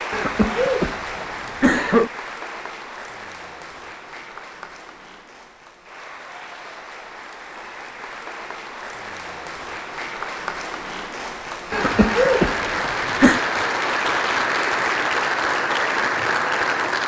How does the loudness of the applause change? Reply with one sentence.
The loudness of the applause goes down, then up.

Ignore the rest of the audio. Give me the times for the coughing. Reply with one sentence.
The coughing can be heard from 0.1 to 2.1 s and from 11.7 to 13.4 s.